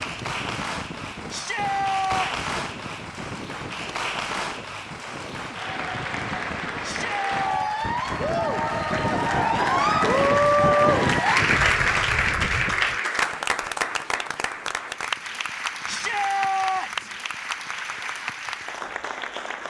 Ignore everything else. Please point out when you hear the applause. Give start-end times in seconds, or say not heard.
0.0-19.6.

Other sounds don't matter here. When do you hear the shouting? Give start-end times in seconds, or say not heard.
1.3-2.5, 6.8-7.8, 15.8-17.1.